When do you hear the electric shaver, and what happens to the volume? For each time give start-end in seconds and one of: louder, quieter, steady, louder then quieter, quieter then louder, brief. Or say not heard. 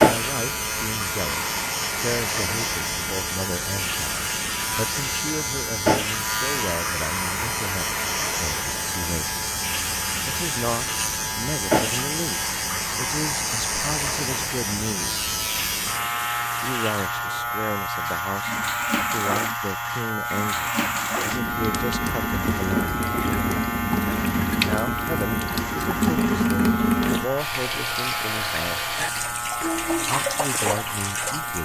0.0-31.6 steady.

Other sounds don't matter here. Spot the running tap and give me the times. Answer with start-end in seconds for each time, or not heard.
0.0-31.6.